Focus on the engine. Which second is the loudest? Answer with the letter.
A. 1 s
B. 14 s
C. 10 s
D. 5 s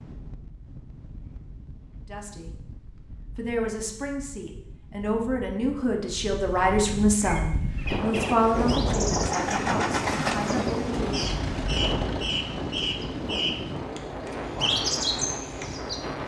C.